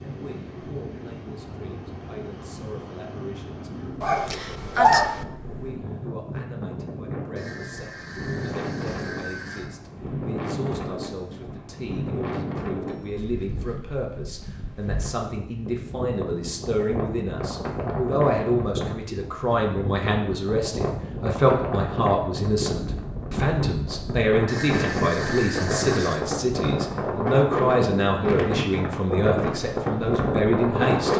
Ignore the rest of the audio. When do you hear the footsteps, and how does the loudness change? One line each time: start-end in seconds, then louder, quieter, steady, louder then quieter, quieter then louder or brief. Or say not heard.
not heard.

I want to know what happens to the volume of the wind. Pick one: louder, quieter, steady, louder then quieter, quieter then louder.
louder.